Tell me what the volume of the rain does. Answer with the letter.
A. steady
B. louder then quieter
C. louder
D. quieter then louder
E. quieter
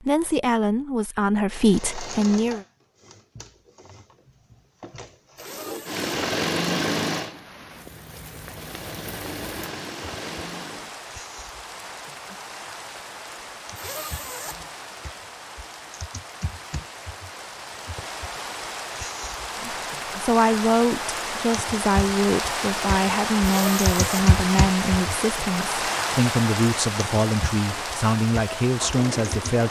C.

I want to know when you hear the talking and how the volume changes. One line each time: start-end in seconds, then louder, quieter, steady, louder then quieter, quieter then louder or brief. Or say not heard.
0.0-2.6 brief
19.6-29.6 steady.